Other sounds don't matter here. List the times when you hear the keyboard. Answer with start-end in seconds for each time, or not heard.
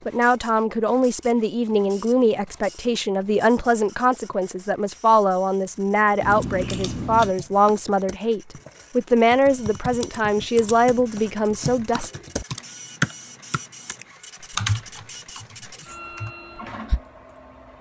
6.0-17.0.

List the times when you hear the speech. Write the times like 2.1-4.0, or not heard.
0.1-12.1.